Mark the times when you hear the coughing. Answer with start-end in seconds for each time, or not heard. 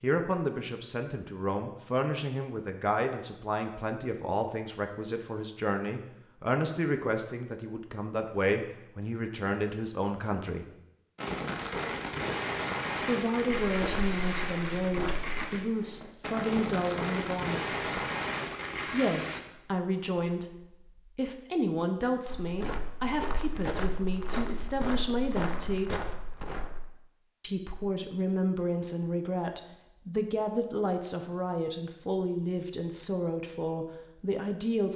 not heard.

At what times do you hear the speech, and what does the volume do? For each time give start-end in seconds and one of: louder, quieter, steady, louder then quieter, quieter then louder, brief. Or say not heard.
0.0-10.7 steady
13.0-18.0 steady
18.9-25.9 steady
27.4-34.9 steady.